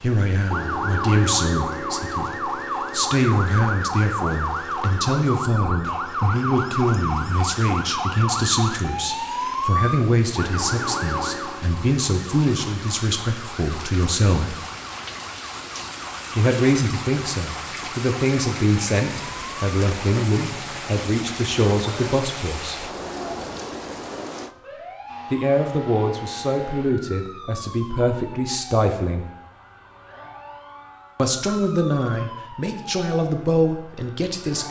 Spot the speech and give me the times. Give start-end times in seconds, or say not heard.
0.0-14.7, 16.4-22.9, 25.3-29.2, 31.1-34.6.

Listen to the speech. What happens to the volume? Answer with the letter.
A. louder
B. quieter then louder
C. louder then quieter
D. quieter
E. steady
E.